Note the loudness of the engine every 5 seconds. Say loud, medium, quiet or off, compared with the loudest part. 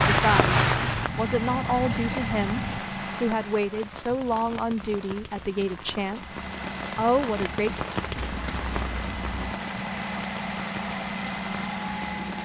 loud, medium, loud.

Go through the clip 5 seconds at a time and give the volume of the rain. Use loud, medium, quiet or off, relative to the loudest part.
loud, medium, quiet.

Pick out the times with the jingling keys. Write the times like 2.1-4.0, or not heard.
0.8-2.8, 8.2-9.6.